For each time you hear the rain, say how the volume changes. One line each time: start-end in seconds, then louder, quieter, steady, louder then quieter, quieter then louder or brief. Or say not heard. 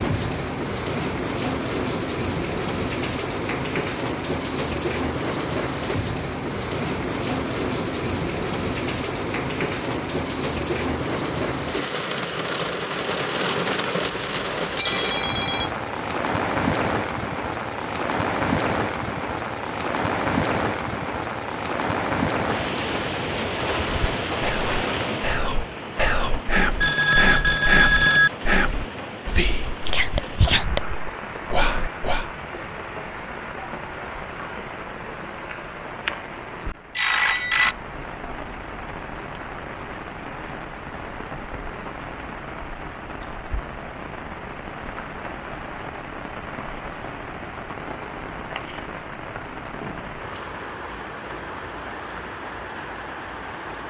0.0-53.8 quieter.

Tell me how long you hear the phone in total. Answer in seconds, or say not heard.
4 s.